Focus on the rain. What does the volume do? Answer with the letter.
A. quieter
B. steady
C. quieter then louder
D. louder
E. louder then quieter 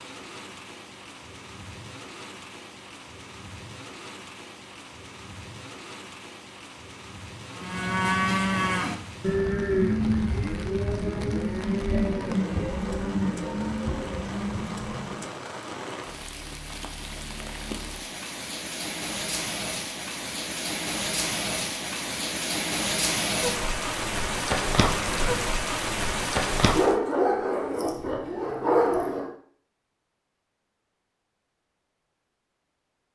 D.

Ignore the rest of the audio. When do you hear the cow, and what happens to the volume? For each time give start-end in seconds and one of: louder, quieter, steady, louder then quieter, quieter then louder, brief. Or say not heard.
7.5-15.2 quieter.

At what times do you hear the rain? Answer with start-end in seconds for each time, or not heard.
0.0-26.9.